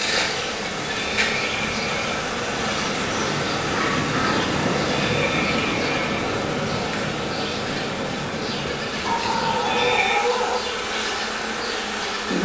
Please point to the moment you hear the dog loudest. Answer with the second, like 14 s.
10 s.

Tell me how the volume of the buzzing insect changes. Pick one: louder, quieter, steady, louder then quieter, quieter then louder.
steady.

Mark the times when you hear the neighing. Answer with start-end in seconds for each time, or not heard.
0.9-2.0, 5.0-6.2, 9.6-10.3.